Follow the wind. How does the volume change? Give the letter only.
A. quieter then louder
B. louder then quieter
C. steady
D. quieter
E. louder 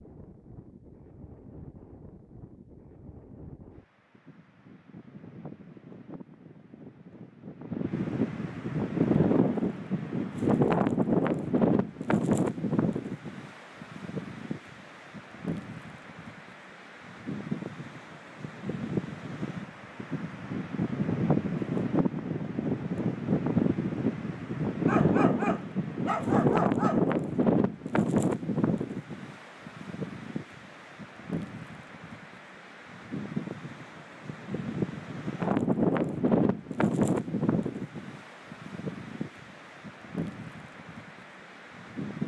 E.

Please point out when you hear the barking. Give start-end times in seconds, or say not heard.
24.9-27.1.